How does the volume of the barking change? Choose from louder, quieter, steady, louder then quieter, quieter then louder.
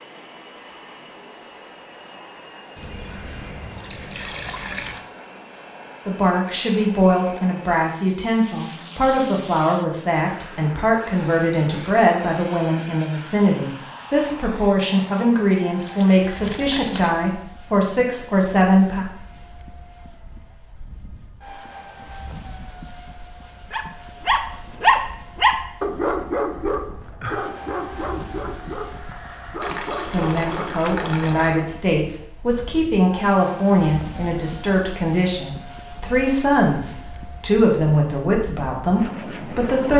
quieter.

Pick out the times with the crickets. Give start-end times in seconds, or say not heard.
0.0-39.9.